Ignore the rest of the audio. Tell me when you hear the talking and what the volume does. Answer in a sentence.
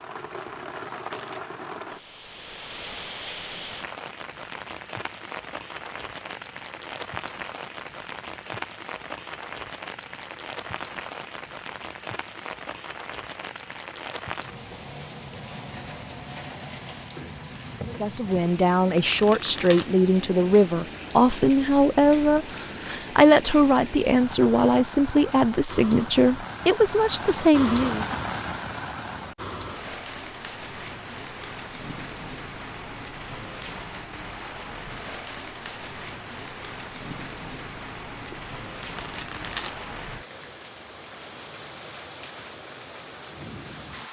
The talking can be heard from 17.9 to 28.1 s, at a steady volume.